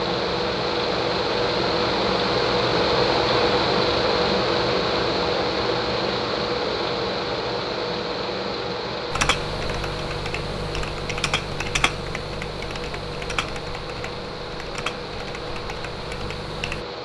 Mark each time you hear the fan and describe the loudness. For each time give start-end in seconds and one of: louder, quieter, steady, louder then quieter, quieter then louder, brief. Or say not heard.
0.0-17.0 quieter.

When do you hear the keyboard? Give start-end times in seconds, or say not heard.
9.1-16.9.